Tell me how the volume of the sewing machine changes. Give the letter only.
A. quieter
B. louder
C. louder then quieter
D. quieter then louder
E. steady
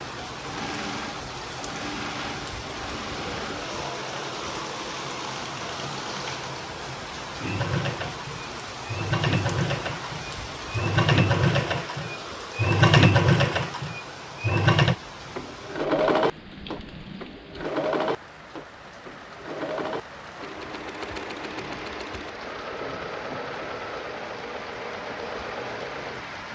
C.